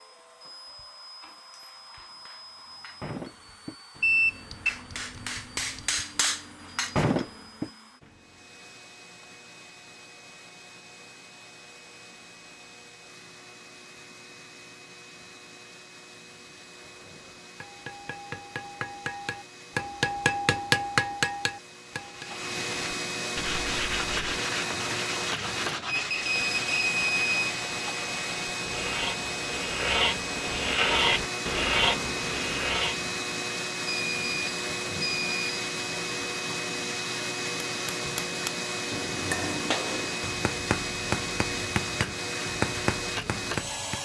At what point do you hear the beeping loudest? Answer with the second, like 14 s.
4 s.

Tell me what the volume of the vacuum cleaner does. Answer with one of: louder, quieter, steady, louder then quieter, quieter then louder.
louder.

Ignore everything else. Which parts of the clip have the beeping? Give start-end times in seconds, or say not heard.
4.0-6.0, 25.9-27.6, 33.9-35.6.